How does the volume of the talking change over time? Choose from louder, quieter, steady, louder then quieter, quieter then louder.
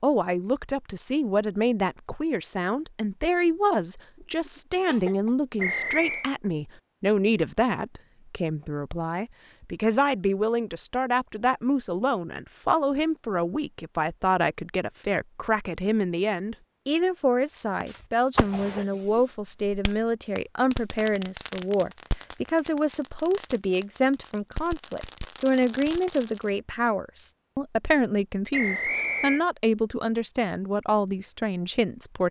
steady.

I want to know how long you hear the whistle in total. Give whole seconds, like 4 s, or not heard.
2 s.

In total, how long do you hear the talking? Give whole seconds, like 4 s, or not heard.
32 s.